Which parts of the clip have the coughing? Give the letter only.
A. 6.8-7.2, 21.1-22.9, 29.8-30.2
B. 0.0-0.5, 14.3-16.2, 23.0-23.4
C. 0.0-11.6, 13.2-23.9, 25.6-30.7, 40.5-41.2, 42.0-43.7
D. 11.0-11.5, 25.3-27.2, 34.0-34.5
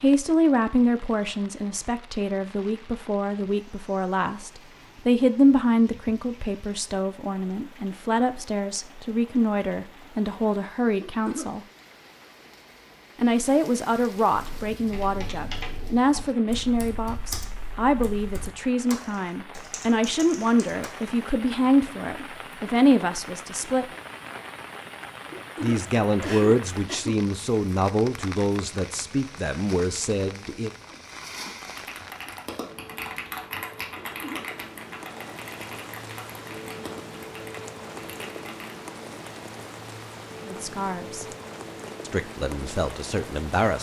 D.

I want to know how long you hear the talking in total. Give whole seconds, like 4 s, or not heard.
30 s.